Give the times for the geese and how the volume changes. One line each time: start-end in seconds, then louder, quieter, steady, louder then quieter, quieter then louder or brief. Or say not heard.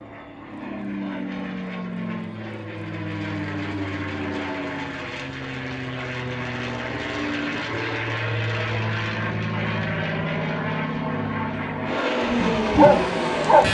not heard.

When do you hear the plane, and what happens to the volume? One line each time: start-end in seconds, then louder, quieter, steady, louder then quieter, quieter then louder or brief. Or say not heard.
0.0-13.6 louder.